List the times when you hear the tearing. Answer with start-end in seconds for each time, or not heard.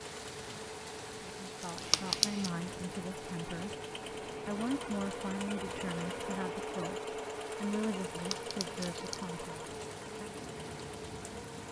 1.6-2.5, 8.2-9.2.